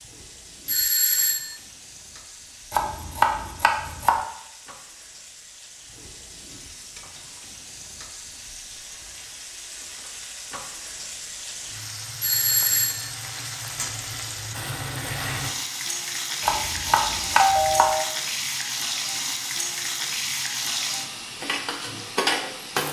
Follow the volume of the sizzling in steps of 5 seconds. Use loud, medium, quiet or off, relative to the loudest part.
quiet, quiet, medium, loud, loud.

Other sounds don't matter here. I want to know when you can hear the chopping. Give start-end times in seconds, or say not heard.
2.7-4.2, 16.4-17.9.